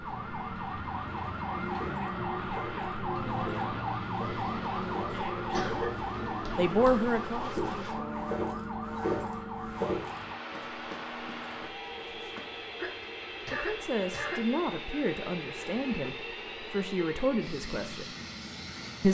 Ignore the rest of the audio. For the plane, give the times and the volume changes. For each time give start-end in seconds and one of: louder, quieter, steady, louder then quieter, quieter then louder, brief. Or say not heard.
0.0-19.0 steady.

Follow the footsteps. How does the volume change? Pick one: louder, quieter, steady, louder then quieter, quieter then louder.
louder then quieter.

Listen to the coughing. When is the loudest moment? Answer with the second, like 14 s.
6 s.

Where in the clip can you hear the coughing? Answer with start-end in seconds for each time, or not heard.
5.5-6.1, 12.8-14.4.